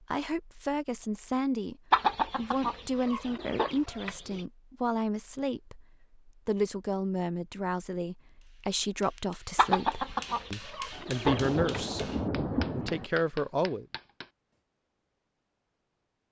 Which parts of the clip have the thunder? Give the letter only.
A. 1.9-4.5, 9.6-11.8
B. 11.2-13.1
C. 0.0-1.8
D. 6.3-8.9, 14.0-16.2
B.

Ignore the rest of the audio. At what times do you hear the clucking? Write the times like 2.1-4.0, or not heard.
1.9-4.5, 9.6-11.8.